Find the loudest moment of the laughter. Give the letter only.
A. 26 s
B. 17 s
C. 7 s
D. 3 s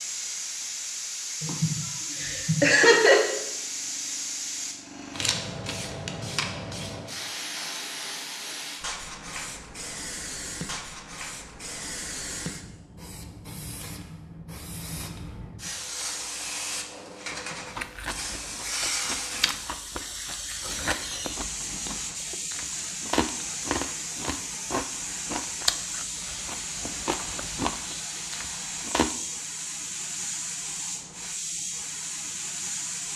D.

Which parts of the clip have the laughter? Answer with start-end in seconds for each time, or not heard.
1.4-3.2.